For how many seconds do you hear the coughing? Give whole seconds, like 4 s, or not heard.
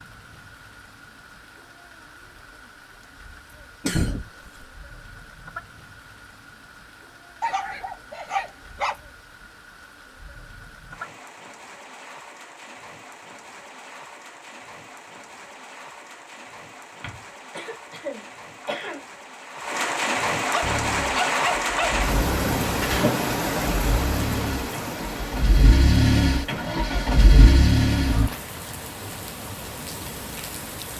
3 s.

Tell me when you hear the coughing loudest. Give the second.
4 s.